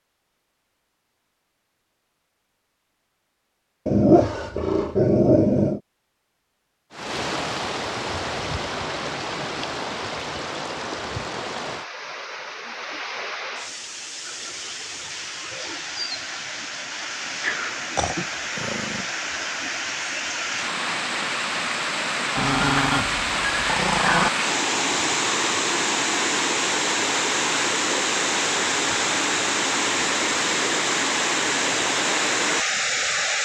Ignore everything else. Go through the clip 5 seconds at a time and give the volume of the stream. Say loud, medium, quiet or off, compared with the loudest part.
off, medium, medium, medium, loud, loud, loud.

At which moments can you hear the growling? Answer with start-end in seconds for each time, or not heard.
3.9-5.8, 17.4-19.1, 22.4-24.3.